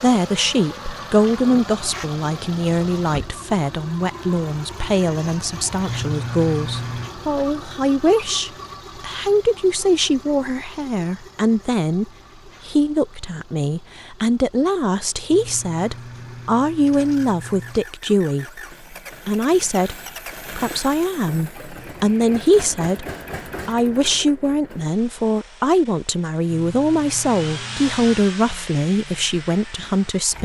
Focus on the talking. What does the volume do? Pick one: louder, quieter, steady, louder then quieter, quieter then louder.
steady.